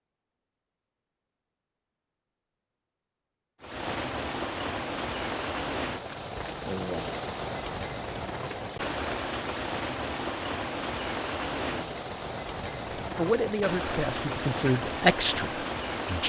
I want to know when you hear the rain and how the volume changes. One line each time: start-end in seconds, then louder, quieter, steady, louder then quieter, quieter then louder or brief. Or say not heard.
3.6-16.2 steady.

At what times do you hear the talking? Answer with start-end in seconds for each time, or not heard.
13.2-16.2.